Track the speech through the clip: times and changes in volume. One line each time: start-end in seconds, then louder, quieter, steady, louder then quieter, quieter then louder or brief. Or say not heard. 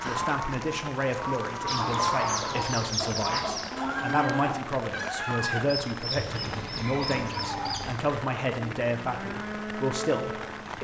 0.0-10.7 steady.